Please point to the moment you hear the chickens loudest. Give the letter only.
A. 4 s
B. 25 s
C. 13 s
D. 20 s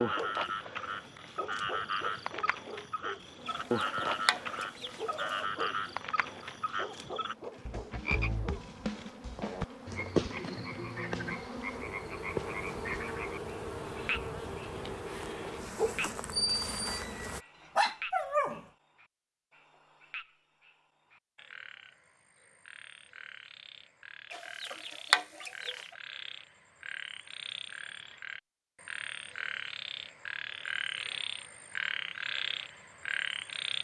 B.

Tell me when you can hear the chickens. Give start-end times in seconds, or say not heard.
3.5-5.5, 24.3-25.9.